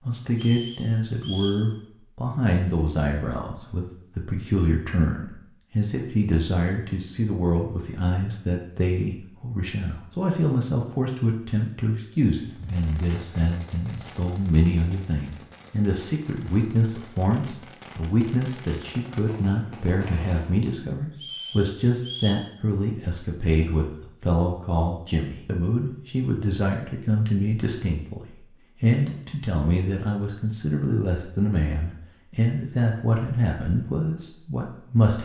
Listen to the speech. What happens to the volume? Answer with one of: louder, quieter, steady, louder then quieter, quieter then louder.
steady.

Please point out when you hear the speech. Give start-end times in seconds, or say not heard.
0.0-35.1.